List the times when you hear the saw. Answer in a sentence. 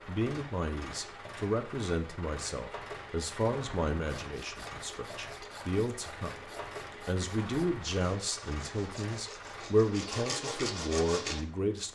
You can hear the saw from 4.0 to 11.4 s.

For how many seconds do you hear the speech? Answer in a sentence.
You can hear the speech for 11 seconds altogether.